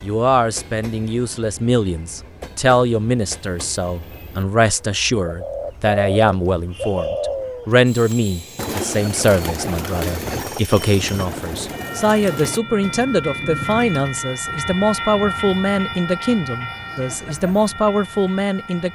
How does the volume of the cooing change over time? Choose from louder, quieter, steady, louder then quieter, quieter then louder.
quieter.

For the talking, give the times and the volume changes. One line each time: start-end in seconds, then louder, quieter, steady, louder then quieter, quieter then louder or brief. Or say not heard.
0.0-18.8 steady.